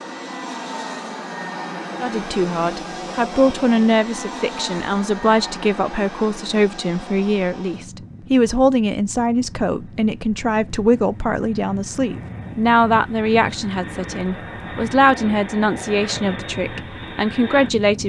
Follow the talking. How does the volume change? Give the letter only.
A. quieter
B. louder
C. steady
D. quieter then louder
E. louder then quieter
C.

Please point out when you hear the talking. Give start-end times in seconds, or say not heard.
2.0-18.0.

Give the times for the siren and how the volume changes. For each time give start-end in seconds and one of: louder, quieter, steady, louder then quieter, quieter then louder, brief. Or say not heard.
not heard.